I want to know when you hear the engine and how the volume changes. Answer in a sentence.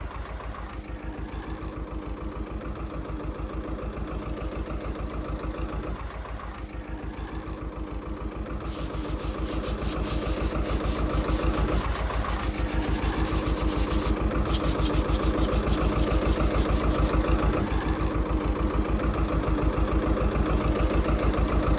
You can hear the engine from 0.0 to 21.7 s, getting louder.